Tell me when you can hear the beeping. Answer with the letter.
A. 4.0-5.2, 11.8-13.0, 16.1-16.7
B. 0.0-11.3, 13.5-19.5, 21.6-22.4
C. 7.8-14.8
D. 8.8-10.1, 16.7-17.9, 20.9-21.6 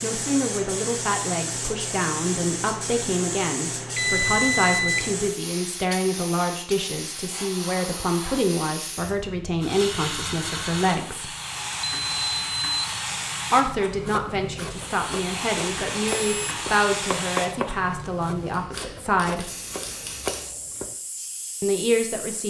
A.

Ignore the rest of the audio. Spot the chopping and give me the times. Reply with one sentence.
The chopping can be heard from 13.9 to 20.9 s.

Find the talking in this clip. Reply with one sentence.
You can hear the talking from 0.0 to 11.3 s, from 13.5 to 19.5 s and from 21.6 to 22.4 s.